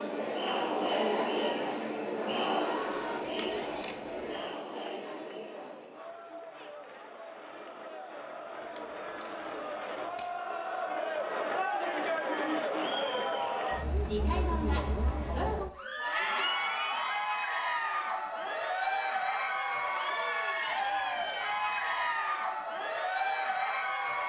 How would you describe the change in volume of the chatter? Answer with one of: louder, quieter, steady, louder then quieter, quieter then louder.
quieter then louder.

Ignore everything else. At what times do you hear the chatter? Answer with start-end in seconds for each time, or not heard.
0.0-24.2.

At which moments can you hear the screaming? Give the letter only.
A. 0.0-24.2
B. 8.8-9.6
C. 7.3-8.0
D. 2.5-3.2
D.